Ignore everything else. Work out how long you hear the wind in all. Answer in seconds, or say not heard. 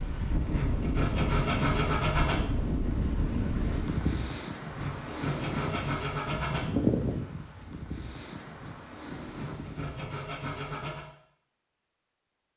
10 s.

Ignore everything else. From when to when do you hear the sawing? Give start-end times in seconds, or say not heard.
0.4-2.4, 4.7-6.7, 9.2-11.1.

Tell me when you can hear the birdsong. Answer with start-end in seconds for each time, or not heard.
not heard.